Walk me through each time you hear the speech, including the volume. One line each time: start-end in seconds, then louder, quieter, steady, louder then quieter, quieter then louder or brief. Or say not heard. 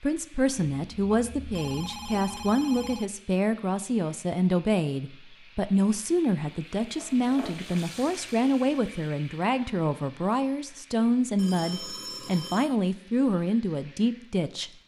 0.0-14.7 steady.